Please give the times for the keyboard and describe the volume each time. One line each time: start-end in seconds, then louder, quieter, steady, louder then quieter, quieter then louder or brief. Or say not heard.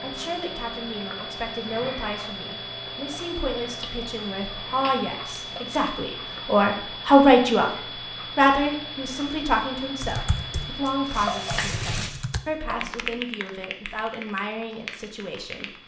10.0-15.8 louder then quieter.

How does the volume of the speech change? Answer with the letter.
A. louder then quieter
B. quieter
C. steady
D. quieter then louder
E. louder
A.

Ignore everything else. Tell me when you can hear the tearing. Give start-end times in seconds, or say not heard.
11.1-12.2.